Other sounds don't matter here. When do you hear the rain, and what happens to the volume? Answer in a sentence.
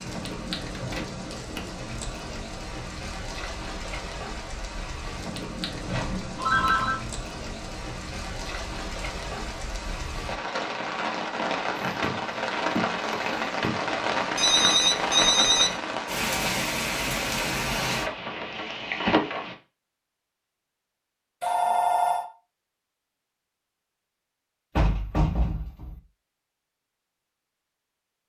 You can hear the rain from 0.0 to 19.6 s, getting louder.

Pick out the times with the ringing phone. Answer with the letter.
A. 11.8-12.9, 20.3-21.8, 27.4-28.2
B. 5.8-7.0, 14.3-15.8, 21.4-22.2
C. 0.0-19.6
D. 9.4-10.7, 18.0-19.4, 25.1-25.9
B.